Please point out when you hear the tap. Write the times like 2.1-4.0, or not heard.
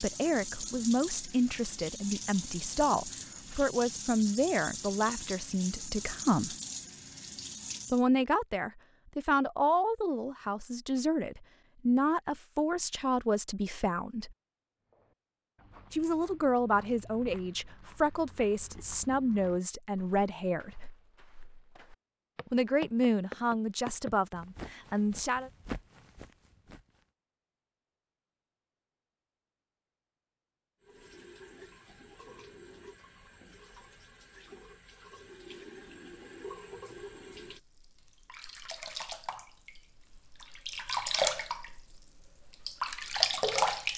0.0-8.0, 30.8-43.9.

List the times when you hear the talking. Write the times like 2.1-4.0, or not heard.
0.0-6.5, 7.9-14.3, 15.9-20.9, 22.5-25.5.